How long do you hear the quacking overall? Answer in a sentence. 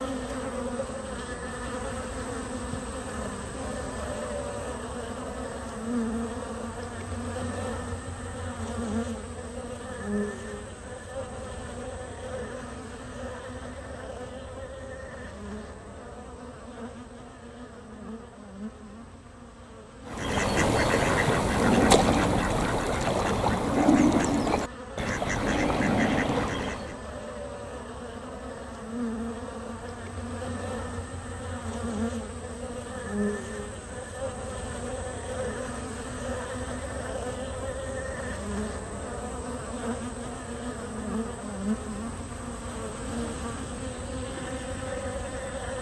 The quacking can be heard for 7 seconds in total.